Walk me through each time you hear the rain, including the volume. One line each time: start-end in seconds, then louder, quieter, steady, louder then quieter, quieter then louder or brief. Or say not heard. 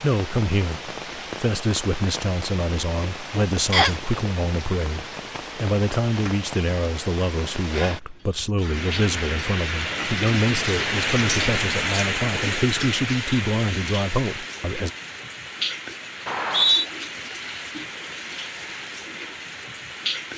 0.0-20.3 louder then quieter.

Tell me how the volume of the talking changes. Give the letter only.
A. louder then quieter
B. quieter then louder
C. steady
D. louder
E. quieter
C.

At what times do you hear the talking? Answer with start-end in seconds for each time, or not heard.
0.0-14.9.